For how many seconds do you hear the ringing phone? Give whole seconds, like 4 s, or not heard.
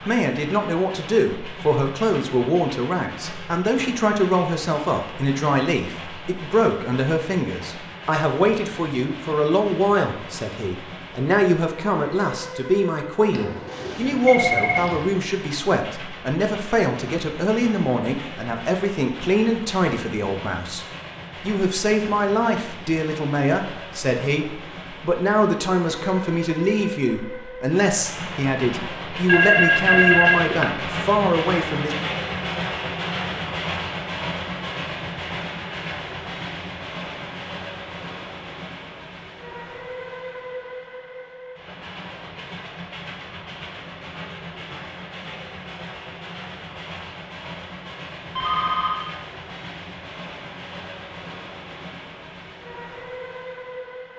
4 s.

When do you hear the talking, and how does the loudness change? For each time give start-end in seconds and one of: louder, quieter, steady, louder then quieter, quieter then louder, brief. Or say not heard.
0.1-31.9 steady.